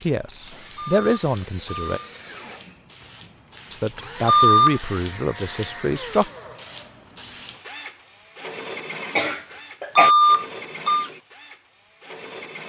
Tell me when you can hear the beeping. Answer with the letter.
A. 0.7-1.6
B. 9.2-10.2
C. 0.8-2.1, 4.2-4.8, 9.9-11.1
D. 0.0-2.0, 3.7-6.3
C.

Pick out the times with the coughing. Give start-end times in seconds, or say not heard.
9.2-10.2.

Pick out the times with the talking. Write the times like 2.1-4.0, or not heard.
0.0-2.0, 3.7-6.3.